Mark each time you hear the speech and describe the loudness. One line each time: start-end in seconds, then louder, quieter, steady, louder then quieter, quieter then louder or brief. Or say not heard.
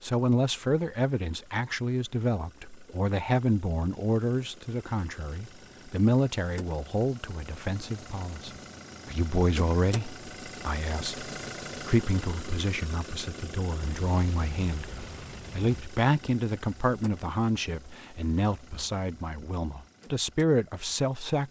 0.0-21.4 steady.